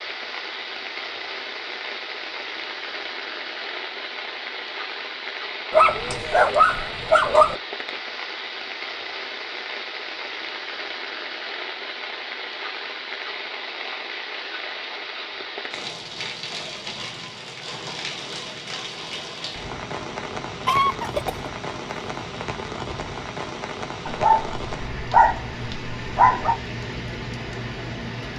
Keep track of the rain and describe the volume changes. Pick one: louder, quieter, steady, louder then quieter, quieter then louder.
steady.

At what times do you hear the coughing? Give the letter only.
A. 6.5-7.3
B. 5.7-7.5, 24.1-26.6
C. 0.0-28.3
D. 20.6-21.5
D.